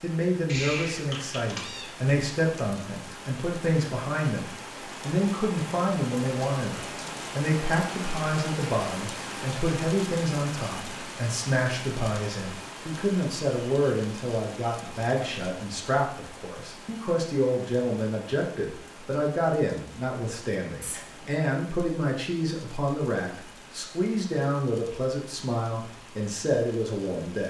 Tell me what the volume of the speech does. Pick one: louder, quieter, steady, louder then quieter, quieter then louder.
steady.